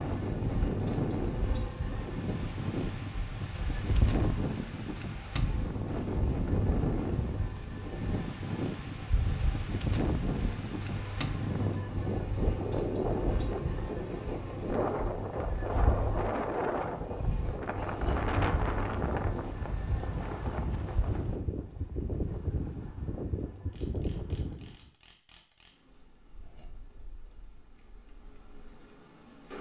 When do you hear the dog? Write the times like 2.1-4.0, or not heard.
not heard.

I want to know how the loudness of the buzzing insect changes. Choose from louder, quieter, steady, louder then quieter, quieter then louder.
quieter.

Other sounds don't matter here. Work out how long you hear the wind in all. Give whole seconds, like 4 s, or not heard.
25 s.